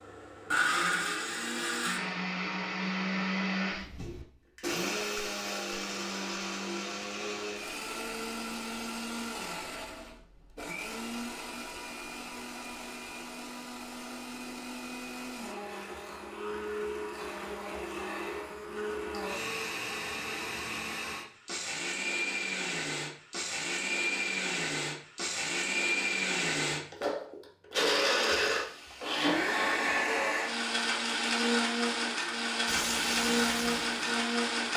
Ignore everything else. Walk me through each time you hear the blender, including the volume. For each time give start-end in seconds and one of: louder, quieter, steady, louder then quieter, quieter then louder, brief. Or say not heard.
0.0-34.7 quieter then louder.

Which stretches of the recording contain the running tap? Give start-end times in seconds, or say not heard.
32.6-34.5.